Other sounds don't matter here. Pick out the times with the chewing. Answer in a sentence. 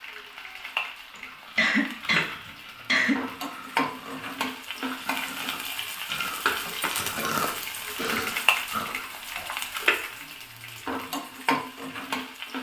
You can hear the chewing from 1.1 to 9.8 s.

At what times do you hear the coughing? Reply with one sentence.
The coughing can be heard from 1.1 to 3.2 s and from 6.7 to 8.4 s.